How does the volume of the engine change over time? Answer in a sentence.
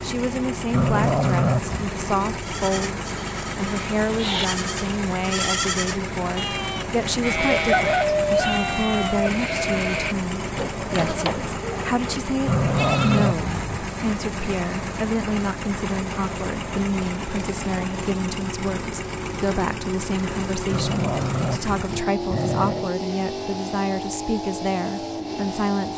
The loudness of the engine stays about the same.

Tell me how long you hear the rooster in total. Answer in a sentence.
The rooster can be heard for 2 seconds in total.